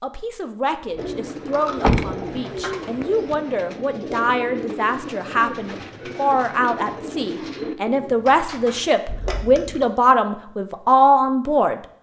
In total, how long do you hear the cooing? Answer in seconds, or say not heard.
8 s.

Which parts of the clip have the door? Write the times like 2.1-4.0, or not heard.
1.8-3.4.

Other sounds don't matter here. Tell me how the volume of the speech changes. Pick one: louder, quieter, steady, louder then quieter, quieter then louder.
louder.